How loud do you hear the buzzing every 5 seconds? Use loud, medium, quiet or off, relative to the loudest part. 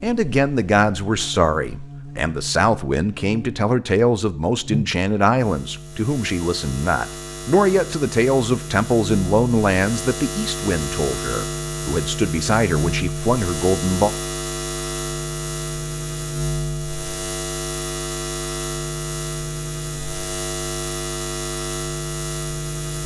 medium, medium, loud, loud, loud.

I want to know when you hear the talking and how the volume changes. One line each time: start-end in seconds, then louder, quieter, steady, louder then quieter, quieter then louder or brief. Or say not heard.
0.0-14.2 steady.